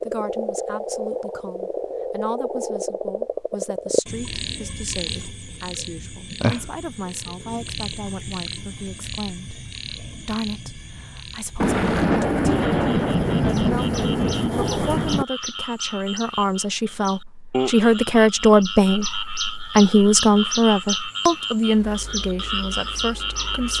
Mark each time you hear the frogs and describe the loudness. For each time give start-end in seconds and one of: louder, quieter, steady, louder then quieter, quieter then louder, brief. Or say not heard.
0.0-23.7 quieter then louder.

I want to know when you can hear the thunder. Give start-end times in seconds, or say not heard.
11.6-15.2.